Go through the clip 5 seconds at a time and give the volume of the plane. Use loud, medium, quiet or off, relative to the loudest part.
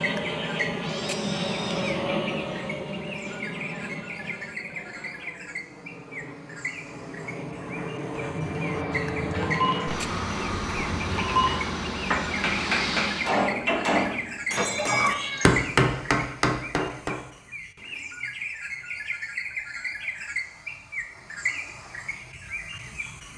loud, loud, loud, off, off.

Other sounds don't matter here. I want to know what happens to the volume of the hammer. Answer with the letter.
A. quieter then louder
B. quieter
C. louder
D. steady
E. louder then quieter
C.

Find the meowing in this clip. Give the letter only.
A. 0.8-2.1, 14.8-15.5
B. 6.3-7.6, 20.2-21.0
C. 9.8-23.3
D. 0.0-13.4
A.